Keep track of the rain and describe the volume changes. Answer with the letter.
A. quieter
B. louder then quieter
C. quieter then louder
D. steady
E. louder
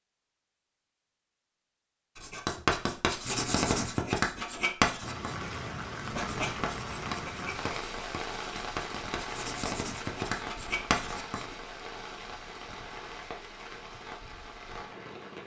A.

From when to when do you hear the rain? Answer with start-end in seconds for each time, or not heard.
5.0-15.4.